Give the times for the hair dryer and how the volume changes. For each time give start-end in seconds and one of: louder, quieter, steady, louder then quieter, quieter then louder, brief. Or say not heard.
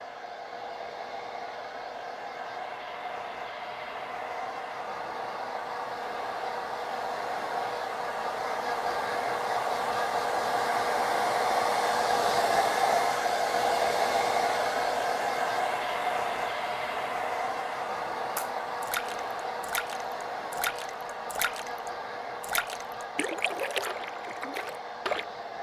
0.0-25.5 louder then quieter.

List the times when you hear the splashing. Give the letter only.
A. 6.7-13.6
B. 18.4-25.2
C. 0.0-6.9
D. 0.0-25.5
B.